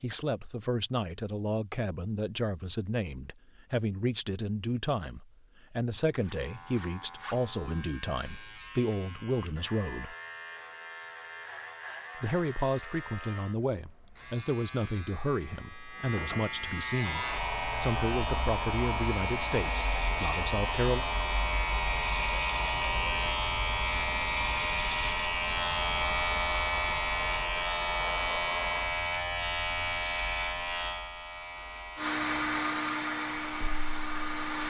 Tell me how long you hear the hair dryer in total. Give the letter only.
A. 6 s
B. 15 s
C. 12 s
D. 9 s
B.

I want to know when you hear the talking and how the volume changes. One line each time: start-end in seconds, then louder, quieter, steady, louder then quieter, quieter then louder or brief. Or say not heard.
0.0-10.2 steady
12.2-21.1 steady.